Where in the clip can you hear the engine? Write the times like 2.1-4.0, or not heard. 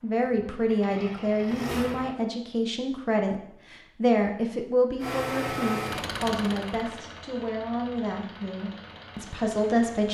0.0-2.1, 5.0-10.0.